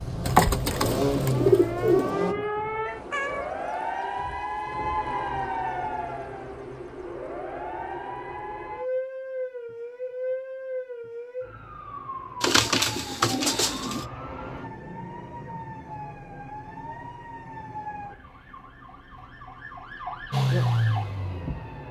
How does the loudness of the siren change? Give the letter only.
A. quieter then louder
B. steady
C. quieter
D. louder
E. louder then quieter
C.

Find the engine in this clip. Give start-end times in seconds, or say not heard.
0.0-2.4, 20.3-21.8.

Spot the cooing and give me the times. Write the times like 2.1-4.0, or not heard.
0.2-2.1, 12.4-14.1.